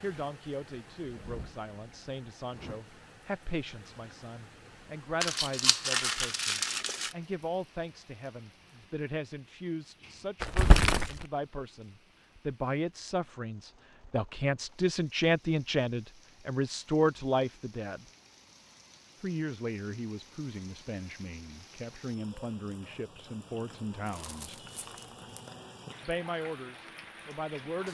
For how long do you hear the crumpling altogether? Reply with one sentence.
The crumpling can be heard for 4 seconds in total.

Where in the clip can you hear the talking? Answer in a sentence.
The talking can be heard from 0.0 to 18.1 s, from 19.2 to 24.7 s and from 26.0 to 27.9 s.